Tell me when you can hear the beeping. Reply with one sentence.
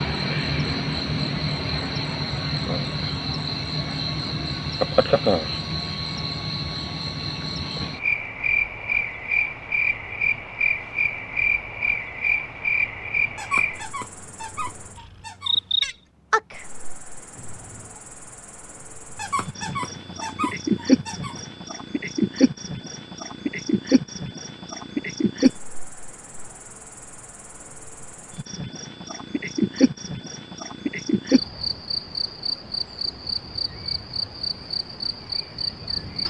You can't hear the beeping here.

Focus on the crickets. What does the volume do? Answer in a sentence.
The loudness of the crickets stays about the same.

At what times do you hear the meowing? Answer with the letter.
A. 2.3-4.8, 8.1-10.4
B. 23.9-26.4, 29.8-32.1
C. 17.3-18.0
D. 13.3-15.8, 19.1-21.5
C.